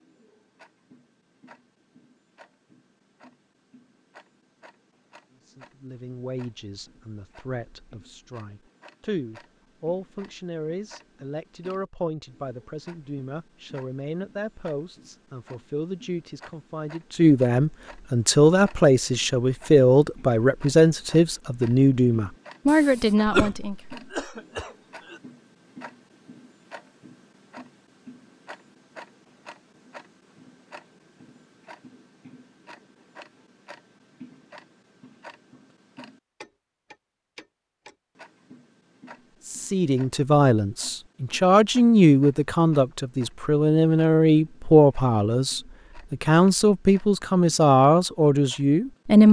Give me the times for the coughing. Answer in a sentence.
You can hear the coughing from 22.6 to 25.2 s.